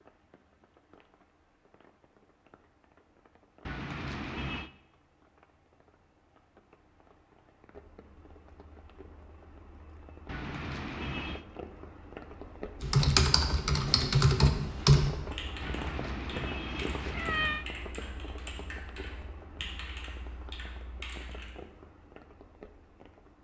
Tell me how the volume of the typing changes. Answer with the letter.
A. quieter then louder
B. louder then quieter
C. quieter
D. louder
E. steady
C.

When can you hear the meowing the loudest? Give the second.
17 s.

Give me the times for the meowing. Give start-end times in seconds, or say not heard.
3.6-4.7, 10.2-11.4, 15.6-17.6.